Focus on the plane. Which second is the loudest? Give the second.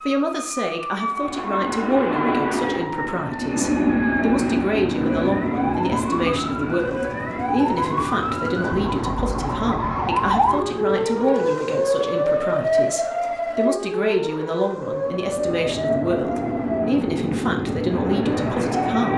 4 s.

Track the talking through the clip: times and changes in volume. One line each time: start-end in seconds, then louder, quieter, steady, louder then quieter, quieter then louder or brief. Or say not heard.
0.0-19.1 steady.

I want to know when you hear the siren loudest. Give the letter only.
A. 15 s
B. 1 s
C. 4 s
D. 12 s
D.